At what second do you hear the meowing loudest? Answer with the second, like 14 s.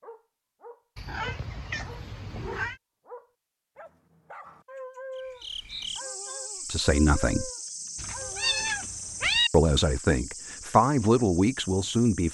9 s.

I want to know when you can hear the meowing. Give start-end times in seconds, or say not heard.
0.9-2.8, 8.0-9.5.